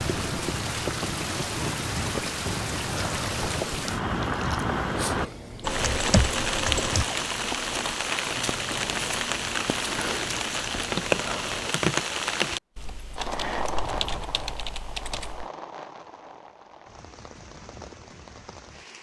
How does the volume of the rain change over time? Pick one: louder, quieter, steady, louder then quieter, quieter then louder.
quieter.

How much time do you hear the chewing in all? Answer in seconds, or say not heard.
9 s.